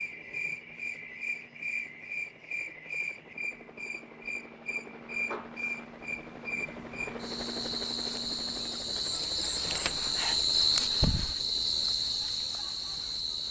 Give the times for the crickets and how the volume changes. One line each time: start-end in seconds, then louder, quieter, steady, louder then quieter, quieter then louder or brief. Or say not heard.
0.0-13.4 louder.